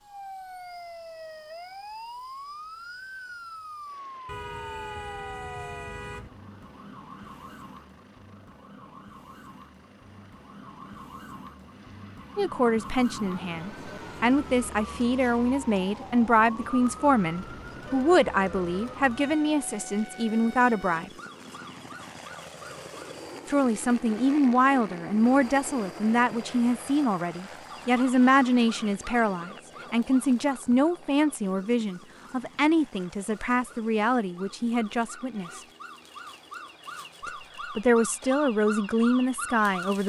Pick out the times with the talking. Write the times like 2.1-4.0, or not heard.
12.3-21.1, 23.4-35.6, 37.2-40.0.